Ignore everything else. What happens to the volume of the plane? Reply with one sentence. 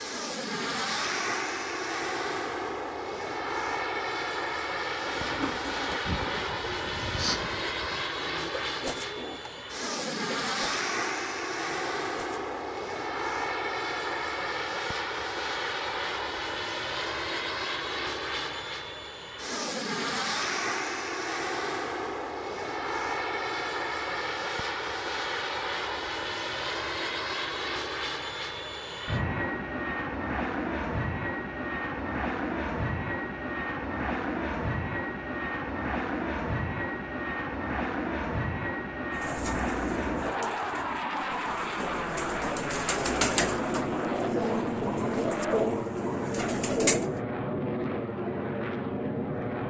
The loudness of the plane stays about the same.